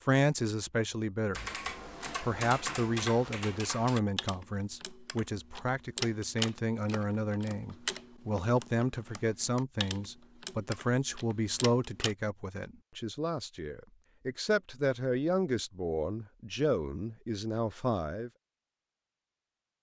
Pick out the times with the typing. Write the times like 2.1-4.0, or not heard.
1.3-12.2.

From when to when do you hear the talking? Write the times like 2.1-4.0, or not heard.
0.0-1.4, 2.2-18.3.